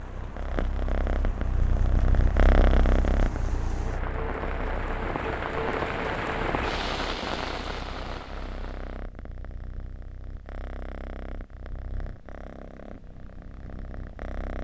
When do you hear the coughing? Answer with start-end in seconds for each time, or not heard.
not heard.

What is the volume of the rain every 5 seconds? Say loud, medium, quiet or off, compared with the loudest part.
medium, loud, off.